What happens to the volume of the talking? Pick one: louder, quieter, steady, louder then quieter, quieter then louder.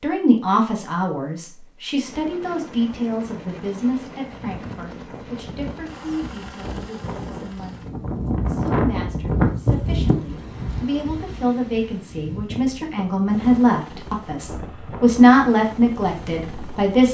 quieter then louder.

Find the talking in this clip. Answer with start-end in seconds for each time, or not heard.
0.0-17.1.